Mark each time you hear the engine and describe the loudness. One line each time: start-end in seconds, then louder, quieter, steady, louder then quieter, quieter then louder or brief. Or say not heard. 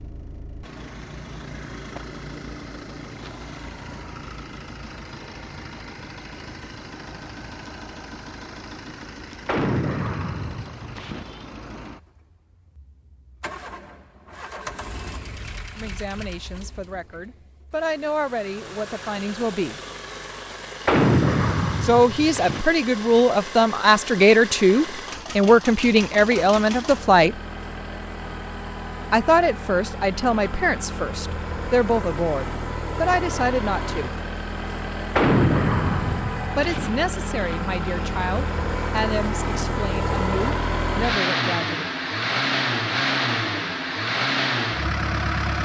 0.0-45.6 louder.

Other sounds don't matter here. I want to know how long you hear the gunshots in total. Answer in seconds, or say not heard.
5 s.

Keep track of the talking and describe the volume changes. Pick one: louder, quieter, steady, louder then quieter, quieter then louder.
louder then quieter.